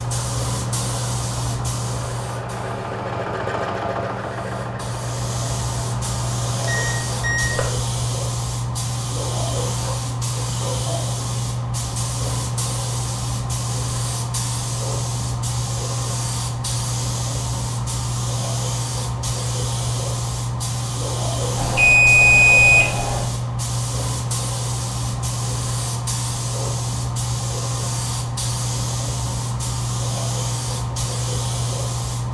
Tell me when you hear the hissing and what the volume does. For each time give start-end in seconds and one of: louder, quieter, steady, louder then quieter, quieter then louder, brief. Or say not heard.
0.0-32.2 steady.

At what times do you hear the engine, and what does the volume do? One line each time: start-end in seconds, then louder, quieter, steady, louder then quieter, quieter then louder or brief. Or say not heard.
0.0-7.6 louder then quieter.